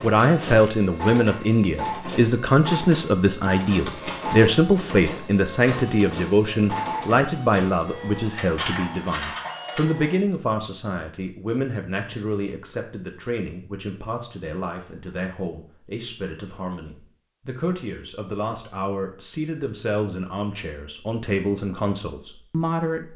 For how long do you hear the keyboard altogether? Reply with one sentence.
The keyboard can't be heard in this clip.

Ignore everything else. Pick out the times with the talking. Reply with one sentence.
The talking can be heard from 0.0 to 23.1 s.